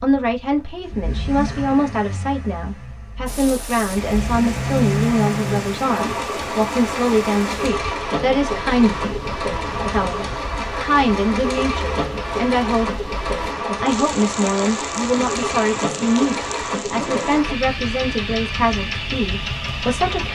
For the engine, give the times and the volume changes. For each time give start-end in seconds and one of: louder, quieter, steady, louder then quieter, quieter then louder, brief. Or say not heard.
0.0-20.3 louder.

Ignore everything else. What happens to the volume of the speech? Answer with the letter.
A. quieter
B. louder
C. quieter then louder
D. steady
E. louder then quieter
D.